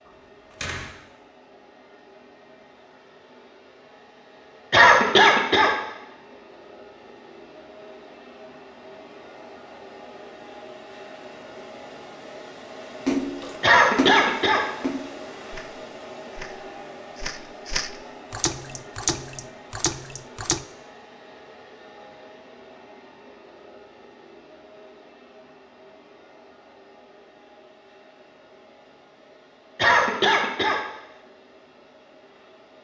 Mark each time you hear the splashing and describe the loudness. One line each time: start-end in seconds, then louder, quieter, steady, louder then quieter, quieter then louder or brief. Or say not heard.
13.1-20.6 quieter then louder.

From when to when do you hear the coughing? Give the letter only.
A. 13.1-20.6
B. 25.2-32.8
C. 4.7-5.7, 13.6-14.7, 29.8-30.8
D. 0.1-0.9
C.